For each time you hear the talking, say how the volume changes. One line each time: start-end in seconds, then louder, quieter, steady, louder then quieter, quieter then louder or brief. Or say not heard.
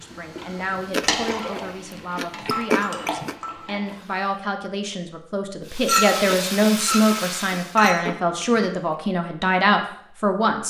0.0-10.6 louder.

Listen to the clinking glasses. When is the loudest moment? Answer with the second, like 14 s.
6 s.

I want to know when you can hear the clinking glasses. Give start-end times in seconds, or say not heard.
2.5-3.7, 5.8-8.1.